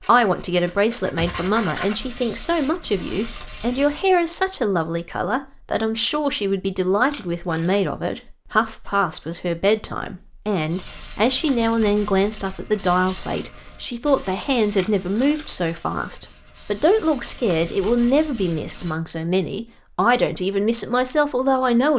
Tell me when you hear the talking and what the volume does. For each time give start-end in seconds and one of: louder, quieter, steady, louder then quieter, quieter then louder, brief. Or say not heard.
0.0-21.9 steady.